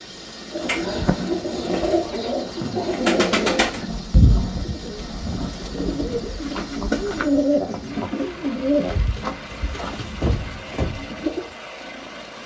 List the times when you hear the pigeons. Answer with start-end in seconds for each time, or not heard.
0.5-11.4.